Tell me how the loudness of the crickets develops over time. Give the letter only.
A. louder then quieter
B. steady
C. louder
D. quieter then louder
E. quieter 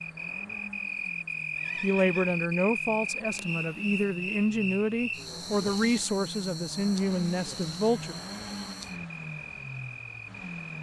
E.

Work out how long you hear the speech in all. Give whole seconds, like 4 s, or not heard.
6 s.